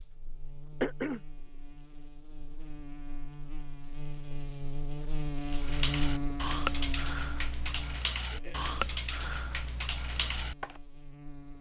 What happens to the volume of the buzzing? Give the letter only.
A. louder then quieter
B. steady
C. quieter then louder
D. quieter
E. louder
A.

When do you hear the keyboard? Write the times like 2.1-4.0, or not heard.
5.5-10.7.